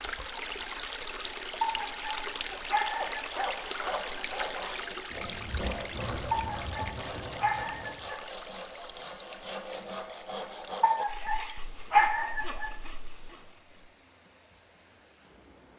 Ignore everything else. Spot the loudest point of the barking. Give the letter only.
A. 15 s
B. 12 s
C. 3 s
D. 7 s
B.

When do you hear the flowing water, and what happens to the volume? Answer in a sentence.
You can hear the flowing water from 0.0 to 15.7 s, getting quieter.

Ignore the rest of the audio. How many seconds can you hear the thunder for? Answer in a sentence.
The thunder can be heard for 3 seconds in total.